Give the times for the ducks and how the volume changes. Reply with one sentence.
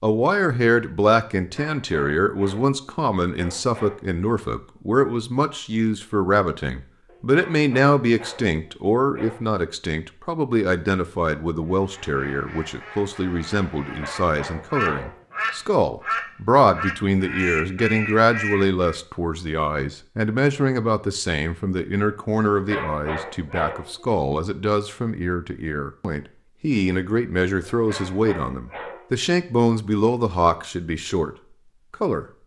You can hear the ducks from 11.7 to 19.0 s, getting louder.